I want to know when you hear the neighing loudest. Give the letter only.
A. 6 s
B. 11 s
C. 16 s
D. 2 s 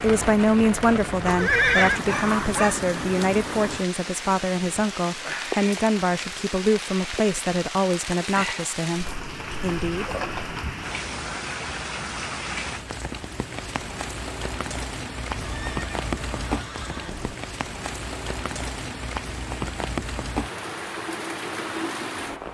D.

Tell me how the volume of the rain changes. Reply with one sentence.
The volume of the rain stays about the same.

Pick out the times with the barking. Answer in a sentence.
You can hear the barking from 1.9 to 2.9 s.